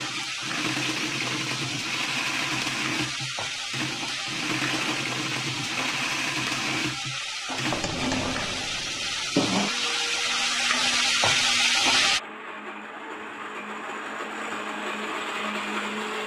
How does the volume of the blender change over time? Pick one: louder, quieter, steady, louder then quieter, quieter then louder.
quieter then louder.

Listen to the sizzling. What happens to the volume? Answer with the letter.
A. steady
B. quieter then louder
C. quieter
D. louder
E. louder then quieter
D.